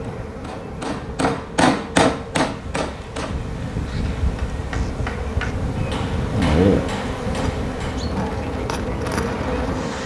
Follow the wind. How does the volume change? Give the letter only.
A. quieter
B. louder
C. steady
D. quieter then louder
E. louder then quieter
B.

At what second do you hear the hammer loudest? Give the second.
2 s.